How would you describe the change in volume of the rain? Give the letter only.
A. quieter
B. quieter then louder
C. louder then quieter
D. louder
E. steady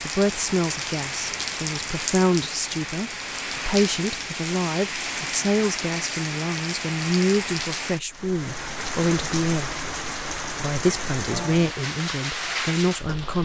E.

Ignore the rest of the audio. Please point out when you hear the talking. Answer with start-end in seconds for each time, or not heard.
0.0-9.7, 10.6-13.4.